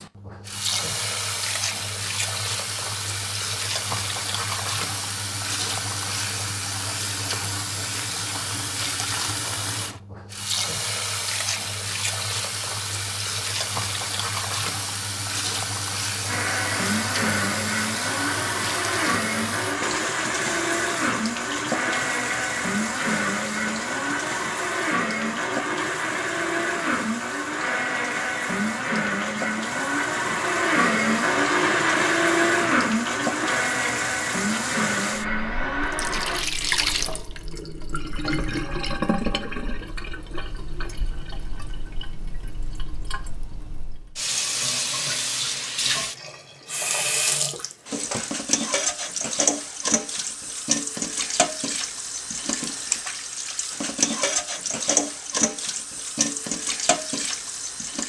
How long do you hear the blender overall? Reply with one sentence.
You can hear the blender for 20 seconds altogether.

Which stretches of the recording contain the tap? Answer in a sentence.
The tap can be heard from 0.0 to 58.0 s.